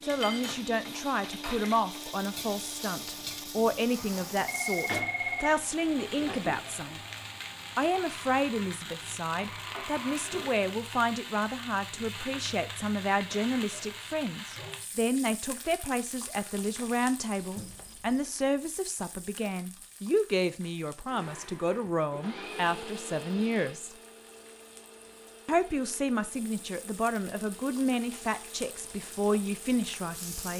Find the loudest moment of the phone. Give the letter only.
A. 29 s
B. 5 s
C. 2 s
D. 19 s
B.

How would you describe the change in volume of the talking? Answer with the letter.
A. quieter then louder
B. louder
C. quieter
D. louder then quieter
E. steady
E.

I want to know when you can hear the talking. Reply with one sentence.
The talking can be heard from 0.0 to 7.0 s, from 7.8 to 23.9 s and from 25.4 to 30.5 s.